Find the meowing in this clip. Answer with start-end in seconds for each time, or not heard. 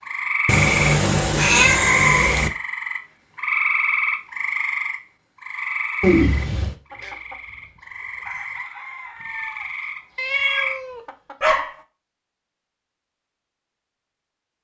0.5-2.5, 6.0-6.8, 10.2-11.8.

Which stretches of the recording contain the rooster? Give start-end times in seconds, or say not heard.
6.9-11.8.